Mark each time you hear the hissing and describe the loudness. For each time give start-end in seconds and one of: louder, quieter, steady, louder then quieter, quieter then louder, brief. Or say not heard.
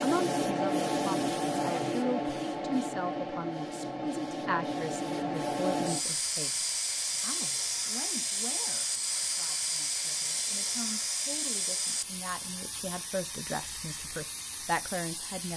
0.0-15.5 quieter.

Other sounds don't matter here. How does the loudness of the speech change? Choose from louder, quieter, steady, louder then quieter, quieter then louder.
quieter then louder.